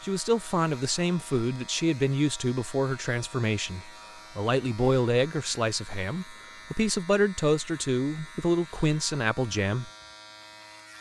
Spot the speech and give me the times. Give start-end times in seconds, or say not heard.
0.0-9.9.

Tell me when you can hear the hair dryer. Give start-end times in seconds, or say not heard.
not heard.